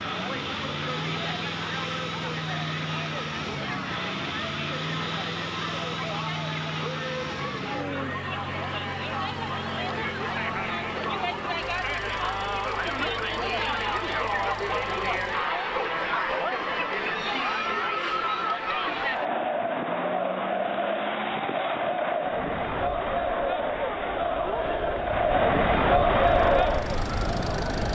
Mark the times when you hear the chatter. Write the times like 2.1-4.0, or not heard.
0.0-27.8.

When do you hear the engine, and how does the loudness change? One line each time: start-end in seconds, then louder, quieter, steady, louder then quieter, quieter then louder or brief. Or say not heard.
0.0-15.5 quieter
26.1-27.8 brief.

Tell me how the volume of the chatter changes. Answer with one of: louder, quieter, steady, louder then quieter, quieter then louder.
louder.